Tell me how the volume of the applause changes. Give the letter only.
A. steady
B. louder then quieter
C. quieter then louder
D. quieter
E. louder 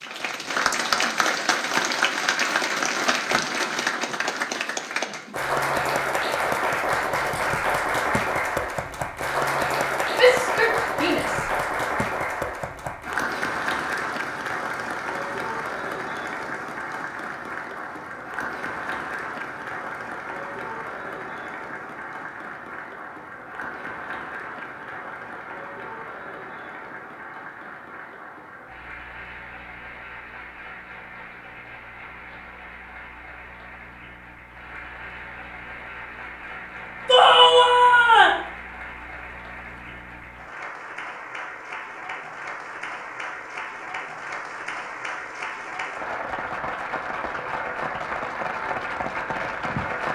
C.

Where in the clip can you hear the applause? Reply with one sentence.
You can hear the applause from 0.0 to 50.0 s.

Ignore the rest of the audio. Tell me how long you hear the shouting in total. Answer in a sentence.
You can hear the shouting for 3 seconds altogether.